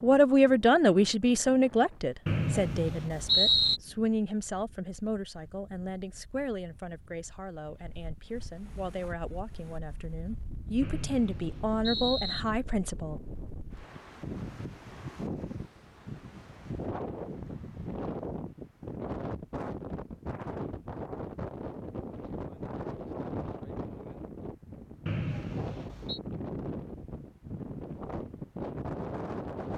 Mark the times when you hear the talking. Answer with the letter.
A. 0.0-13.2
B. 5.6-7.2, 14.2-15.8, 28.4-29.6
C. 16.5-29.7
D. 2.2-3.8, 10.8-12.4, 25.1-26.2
A.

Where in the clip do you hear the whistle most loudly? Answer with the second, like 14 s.
3 s.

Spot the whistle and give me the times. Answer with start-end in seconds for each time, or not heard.
2.2-3.8, 10.8-12.4, 25.1-26.2.